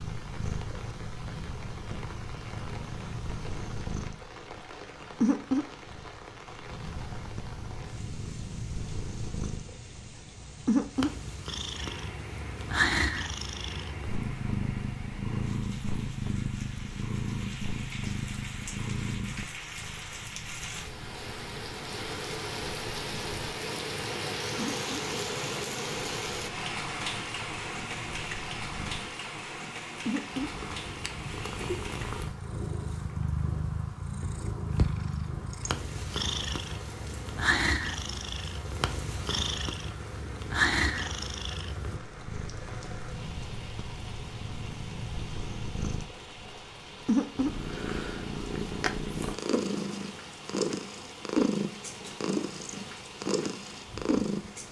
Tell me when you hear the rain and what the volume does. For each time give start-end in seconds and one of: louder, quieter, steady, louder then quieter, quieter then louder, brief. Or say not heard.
0.0-54.6 louder then quieter.